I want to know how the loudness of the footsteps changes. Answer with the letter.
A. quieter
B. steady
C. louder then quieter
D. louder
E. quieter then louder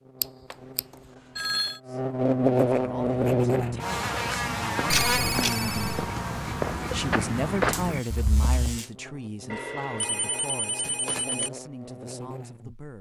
D.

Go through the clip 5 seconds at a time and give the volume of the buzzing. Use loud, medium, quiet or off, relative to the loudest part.
loud, medium, quiet.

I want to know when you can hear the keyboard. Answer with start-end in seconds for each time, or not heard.
not heard.